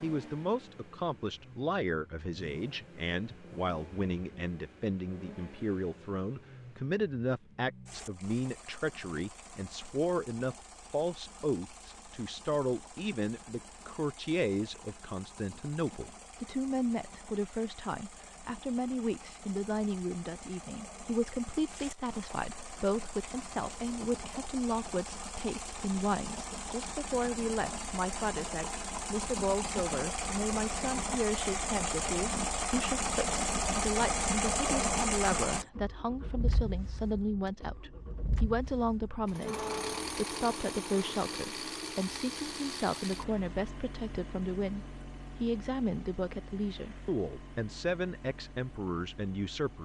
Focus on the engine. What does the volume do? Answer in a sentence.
The loudness of the engine goes up, then down.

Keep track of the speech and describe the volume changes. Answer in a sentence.
The volume of the speech stays about the same.